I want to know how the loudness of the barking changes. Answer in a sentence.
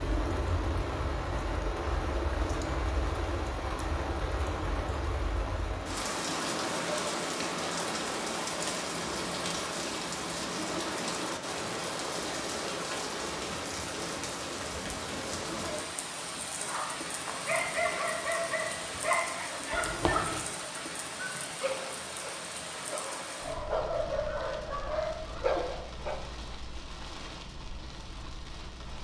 The volume of the barking stays about the same.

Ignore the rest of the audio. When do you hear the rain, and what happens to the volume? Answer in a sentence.
You can hear the rain from 0.0 to 28.9 s, getting quieter.